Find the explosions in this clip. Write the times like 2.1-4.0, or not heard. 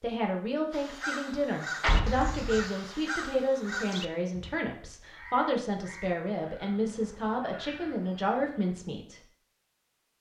1.8-2.6.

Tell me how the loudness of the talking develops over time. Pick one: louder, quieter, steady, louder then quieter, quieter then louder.
steady.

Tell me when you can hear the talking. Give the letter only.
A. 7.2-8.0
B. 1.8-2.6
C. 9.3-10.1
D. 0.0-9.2
D.